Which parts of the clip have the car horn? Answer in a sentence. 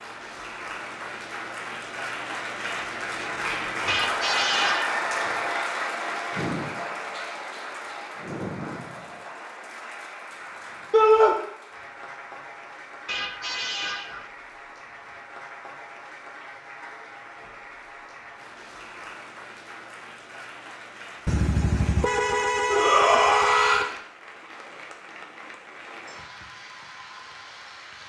The car horn can be heard from 3.9 to 5.0 s, from 13.1 to 14.3 s and from 21.2 to 23.9 s.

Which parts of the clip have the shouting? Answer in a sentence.
You can hear the shouting from 10.9 to 11.3 s and from 22.6 to 23.9 s.